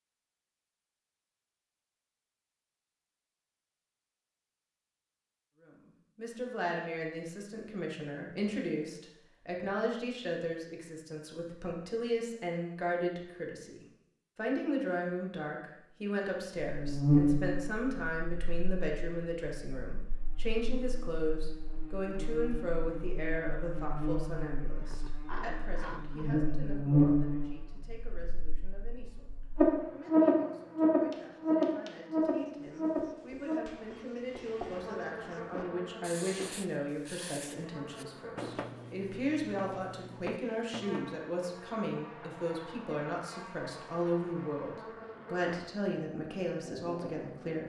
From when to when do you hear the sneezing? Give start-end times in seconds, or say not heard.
24.8-26.3.